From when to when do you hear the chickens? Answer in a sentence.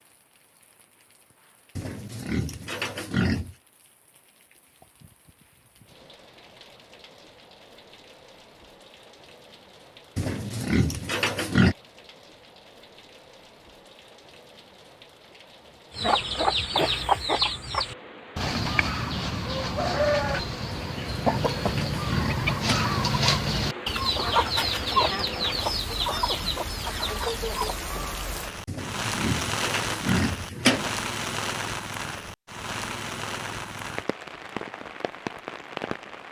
You can hear the chickens from 15.9 to 27.8 s.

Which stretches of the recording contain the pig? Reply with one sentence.
You can hear the pig from 1.8 to 3.5 s, from 10.2 to 11.8 s, from 20.7 to 22.8 s and from 28.6 to 30.9 s.